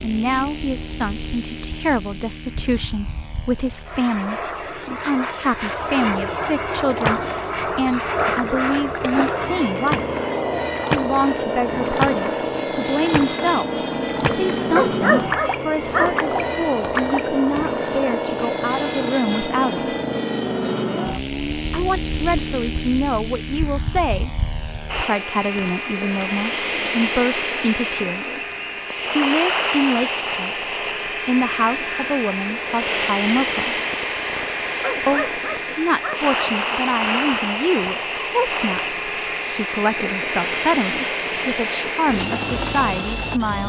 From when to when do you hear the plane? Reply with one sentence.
The plane can be heard from 0.0 to 43.6 s.